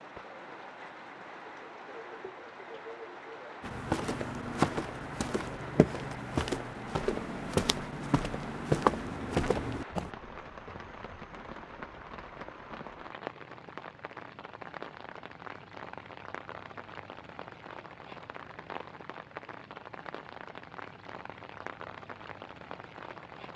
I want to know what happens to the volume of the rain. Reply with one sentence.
The volume of the rain stays about the same.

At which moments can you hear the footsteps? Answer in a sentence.
You can hear the footsteps from 3.6 to 10.1 s.